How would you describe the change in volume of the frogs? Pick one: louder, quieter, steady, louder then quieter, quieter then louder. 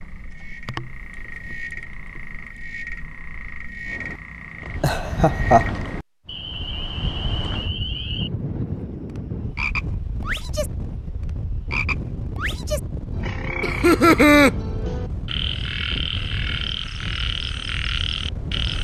louder.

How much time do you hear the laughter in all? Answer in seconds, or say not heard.
2 s.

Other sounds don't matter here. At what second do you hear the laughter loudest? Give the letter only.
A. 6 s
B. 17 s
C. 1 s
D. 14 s
D.